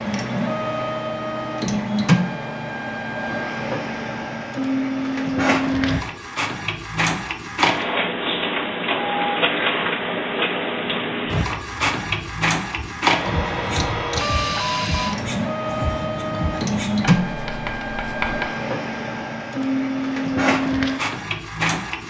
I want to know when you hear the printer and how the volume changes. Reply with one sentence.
The printer can be heard from 0.0 to 22.0 s, at a steady volume.